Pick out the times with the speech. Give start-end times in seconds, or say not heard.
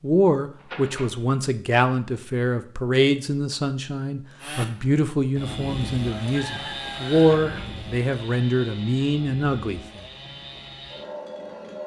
0.0-9.8.